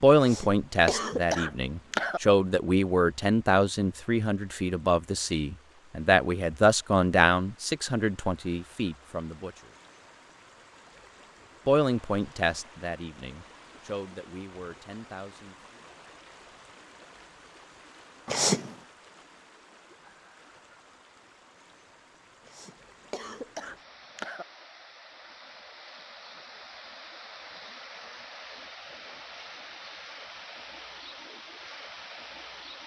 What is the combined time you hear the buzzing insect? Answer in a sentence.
The buzzing insect can't be heard in this clip.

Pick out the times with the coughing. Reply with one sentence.
The coughing can be heard from 0.2 to 2.2 s, from 18.2 to 18.8 s and from 22.4 to 24.4 s.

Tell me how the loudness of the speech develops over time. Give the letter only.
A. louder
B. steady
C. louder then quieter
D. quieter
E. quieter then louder
D.